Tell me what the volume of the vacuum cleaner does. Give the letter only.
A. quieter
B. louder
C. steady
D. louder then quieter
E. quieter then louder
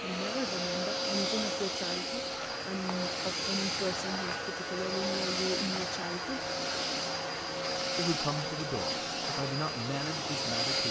C.